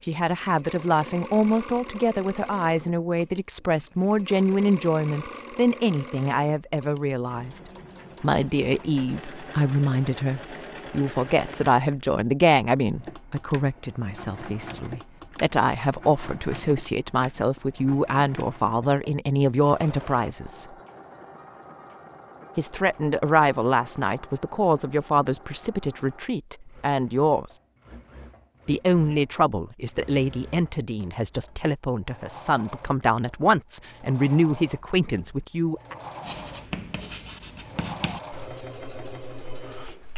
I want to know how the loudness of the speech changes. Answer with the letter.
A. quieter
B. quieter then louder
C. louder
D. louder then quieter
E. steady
E.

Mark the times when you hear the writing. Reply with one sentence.
You can hear the writing from 36.2 to 40.1 s.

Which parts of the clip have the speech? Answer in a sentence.
You can hear the speech from 0.0 to 20.6 s, from 22.6 to 27.4 s and from 28.6 to 36.0 s.